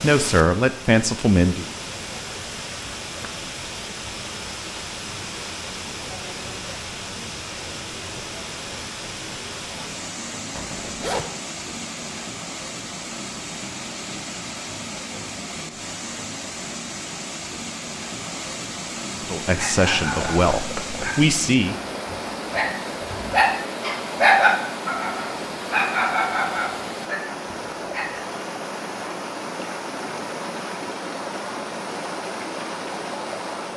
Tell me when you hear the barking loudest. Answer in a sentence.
The volume of the barking peaks at 24 seconds.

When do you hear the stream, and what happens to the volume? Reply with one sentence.
The stream can be heard from 0.0 to 33.7 s, at a steady volume.